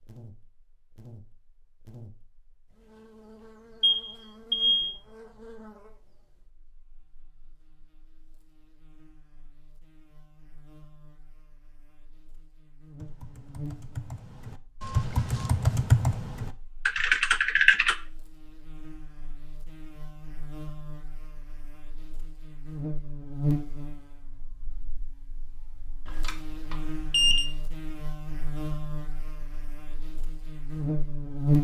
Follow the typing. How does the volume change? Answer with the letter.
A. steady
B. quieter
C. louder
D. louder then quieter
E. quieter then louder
C.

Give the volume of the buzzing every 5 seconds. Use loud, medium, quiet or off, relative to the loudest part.
quiet, quiet, quiet, quiet, medium, quiet, loud.